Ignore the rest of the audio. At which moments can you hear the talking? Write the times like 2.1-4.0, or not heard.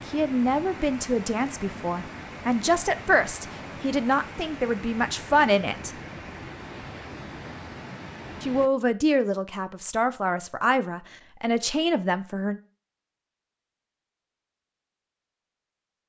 0.1-6.0, 8.4-12.6.